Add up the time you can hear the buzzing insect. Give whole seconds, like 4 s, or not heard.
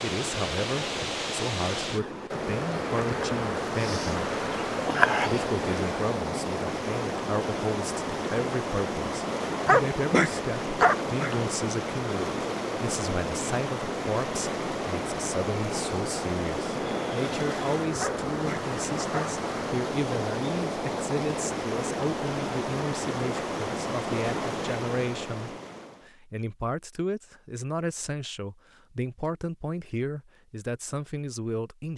4 s.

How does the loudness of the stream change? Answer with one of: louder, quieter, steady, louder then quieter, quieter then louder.
steady.